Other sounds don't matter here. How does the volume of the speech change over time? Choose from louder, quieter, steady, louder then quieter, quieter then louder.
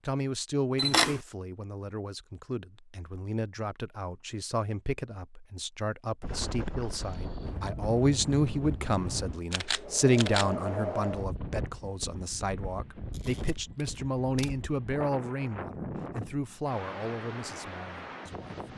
louder then quieter.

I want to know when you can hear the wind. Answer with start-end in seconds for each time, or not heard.
6.2-18.7.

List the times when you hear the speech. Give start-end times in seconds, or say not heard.
0.0-18.6.